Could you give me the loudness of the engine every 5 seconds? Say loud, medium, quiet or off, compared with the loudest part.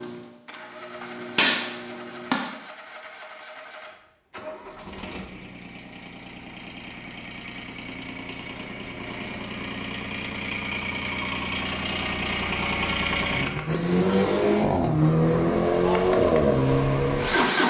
quiet, quiet, medium, loud.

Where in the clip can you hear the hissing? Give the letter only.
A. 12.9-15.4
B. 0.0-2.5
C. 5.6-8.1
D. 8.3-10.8
B.